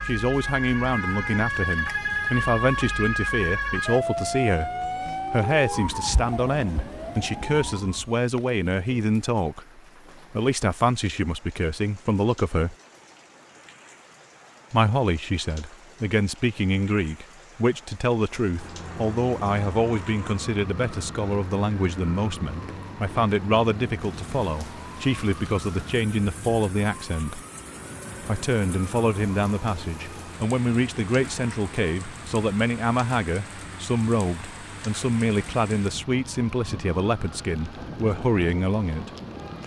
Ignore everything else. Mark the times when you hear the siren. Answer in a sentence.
The siren can be heard from 0.0 to 8.1 s and from 18.4 to 39.6 s.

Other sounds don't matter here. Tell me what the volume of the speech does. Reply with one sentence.
The loudness of the speech stays about the same.